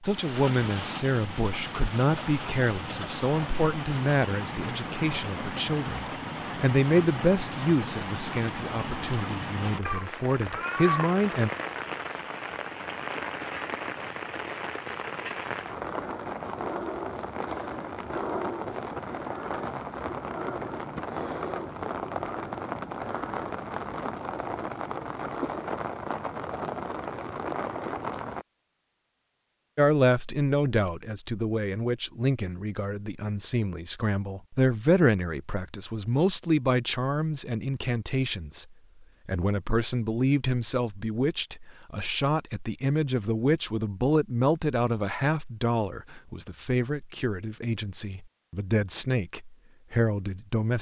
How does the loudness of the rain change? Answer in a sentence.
The volume of the rain stays about the same.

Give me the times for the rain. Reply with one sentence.
You can hear the rain from 0.0 to 28.4 s.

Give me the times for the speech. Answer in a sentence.
The speech can be heard from 0.0 to 11.5 s and from 29.8 to 50.7 s.